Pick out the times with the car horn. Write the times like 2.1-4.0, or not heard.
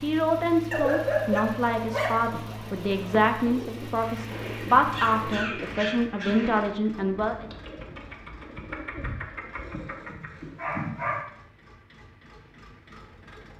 not heard.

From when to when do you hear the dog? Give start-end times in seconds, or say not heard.
0.7-2.1, 4.8-6.5, 9.5-11.2.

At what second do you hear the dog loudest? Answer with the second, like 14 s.
1 s.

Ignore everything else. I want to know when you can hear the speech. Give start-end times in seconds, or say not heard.
0.0-7.5.